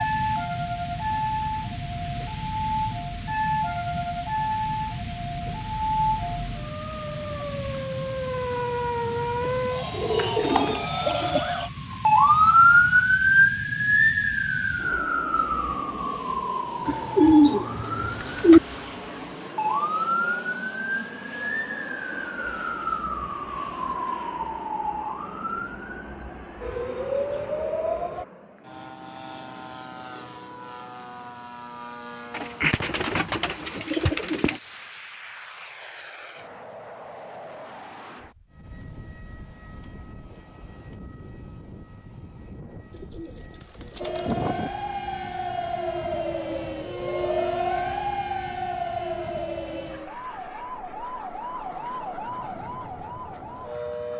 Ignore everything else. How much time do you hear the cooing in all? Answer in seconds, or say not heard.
8 s.